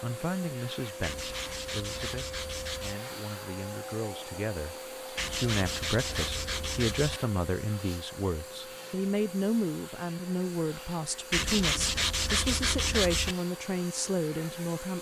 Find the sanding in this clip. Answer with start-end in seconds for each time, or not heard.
1.0-3.0, 5.2-7.2, 11.3-13.3.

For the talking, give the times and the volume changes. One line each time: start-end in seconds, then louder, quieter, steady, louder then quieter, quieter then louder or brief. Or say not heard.
0.0-14.9 louder.